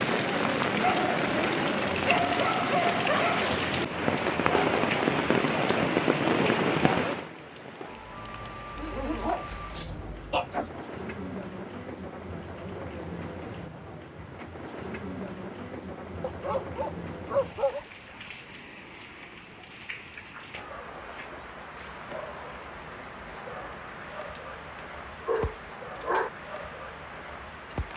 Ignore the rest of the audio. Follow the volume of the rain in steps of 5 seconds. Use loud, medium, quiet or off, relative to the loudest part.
loud, loud, quiet, quiet, quiet, quiet.